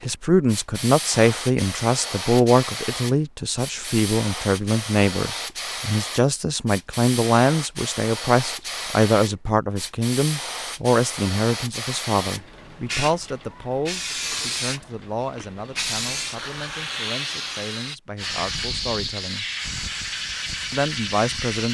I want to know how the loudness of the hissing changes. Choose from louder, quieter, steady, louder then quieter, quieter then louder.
steady.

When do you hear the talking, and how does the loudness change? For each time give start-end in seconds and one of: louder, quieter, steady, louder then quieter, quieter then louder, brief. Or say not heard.
0.0-19.4 quieter
20.7-21.6 brief.